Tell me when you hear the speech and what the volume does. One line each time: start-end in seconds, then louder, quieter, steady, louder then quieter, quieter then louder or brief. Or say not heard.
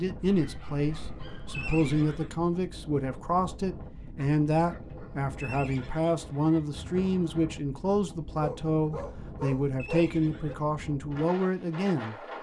0.0-12.2 steady.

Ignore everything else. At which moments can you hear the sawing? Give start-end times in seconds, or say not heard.
not heard.